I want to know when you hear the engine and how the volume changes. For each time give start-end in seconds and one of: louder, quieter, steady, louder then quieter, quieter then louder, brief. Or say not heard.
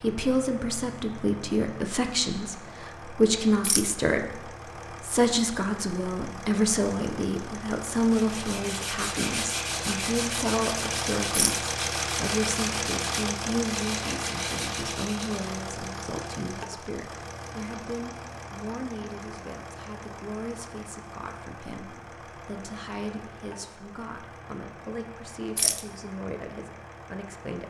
0.0-27.6 louder then quieter.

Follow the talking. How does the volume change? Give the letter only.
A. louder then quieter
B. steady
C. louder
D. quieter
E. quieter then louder
D.